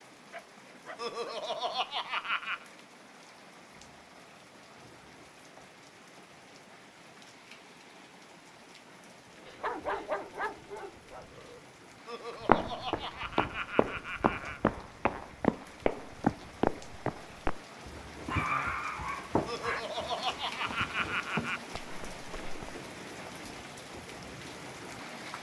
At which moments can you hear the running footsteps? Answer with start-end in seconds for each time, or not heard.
12.4-22.8.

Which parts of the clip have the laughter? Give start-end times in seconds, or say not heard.
0.9-2.6, 12.1-14.7, 19.4-21.6.